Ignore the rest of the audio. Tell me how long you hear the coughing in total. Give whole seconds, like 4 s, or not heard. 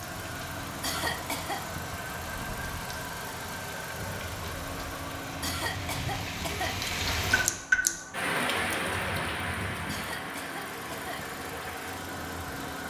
4 s.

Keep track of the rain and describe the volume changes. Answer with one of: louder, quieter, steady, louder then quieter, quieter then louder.
louder then quieter.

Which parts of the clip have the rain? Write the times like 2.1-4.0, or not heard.
0.0-12.8.